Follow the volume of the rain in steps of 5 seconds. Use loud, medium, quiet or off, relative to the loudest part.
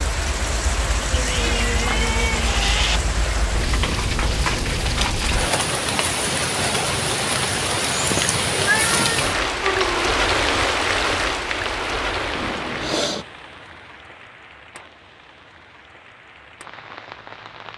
loud, loud, loud, quiet.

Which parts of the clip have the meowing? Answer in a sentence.
You can hear the meowing from 1.2 to 3.0 s, from 8.6 to 10.1 s and from 12.3 to 13.2 s.